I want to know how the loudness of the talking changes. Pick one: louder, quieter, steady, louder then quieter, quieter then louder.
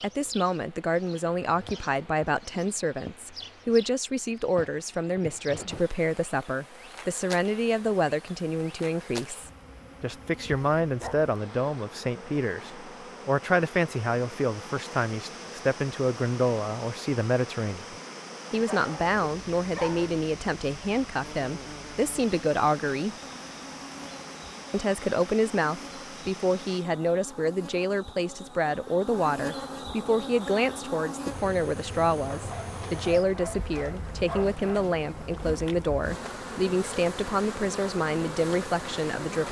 steady.